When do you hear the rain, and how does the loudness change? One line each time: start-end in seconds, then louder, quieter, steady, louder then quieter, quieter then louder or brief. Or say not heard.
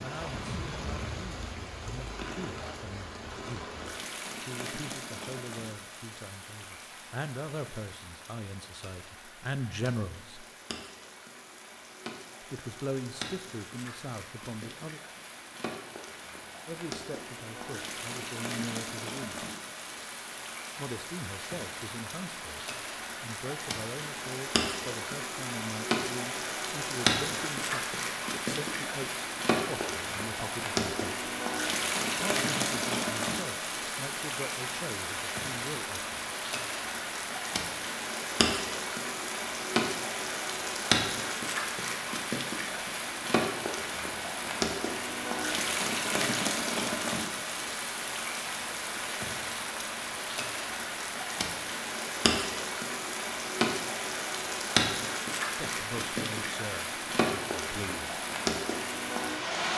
0.0-59.7 louder.